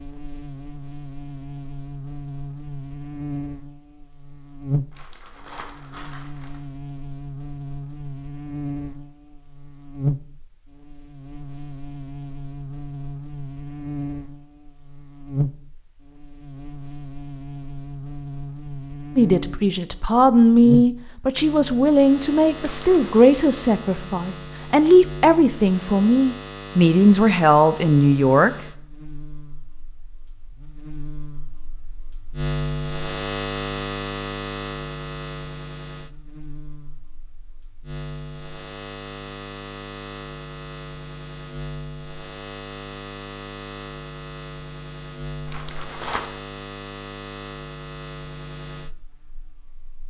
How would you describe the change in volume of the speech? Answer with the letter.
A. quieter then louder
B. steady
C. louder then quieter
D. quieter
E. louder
B.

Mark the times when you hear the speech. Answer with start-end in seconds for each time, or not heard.
19.1-28.5.